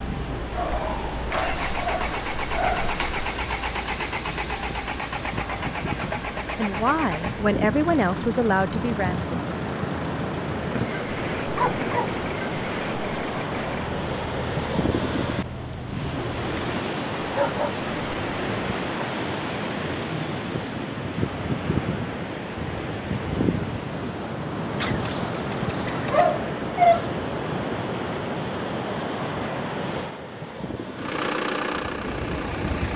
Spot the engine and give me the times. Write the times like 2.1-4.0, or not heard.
0.0-16.6, 30.9-32.9.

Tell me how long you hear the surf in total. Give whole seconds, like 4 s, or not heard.
33 s.